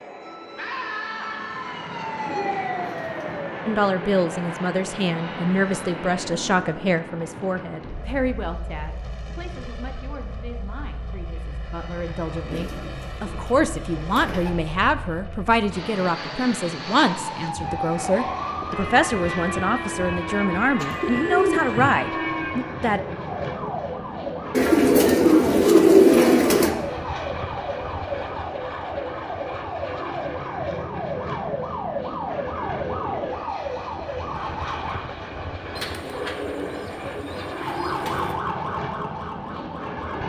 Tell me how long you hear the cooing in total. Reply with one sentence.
You can hear the cooing for 9 seconds altogether.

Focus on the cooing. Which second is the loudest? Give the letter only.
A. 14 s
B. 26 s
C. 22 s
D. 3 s
B.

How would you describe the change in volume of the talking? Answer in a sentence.
The loudness of the talking goes down, then up.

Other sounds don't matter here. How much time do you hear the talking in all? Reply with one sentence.
You can hear the talking for 19 seconds altogether.